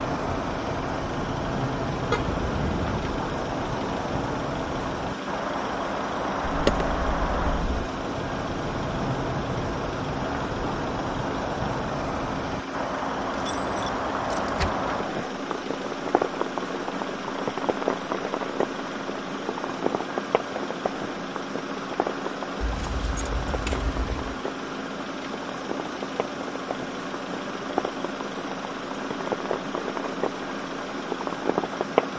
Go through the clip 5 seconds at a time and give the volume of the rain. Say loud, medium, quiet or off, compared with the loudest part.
loud, loud, loud, loud, medium, medium, loud.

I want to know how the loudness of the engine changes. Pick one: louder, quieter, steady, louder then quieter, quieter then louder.
steady.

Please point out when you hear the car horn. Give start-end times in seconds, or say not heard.
2.1-3.2.